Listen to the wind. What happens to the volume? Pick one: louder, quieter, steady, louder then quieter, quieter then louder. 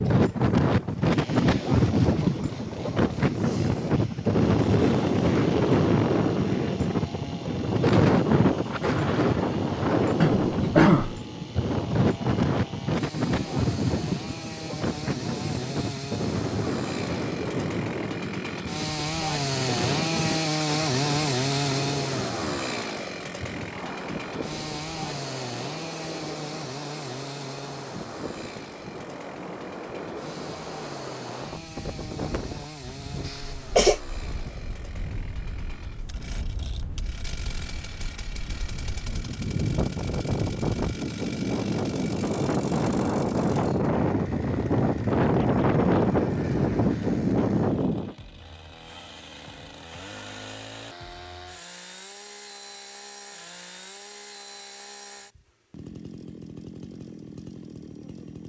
quieter then louder.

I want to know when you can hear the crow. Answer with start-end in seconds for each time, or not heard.
not heard.